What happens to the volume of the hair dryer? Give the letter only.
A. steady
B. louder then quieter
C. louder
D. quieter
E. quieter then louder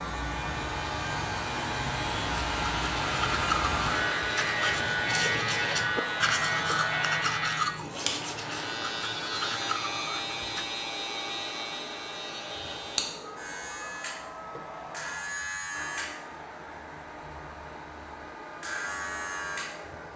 D.